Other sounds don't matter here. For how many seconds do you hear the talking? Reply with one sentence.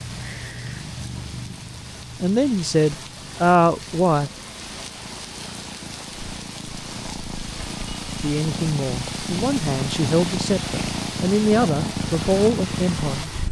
You can hear the talking for 7 seconds altogether.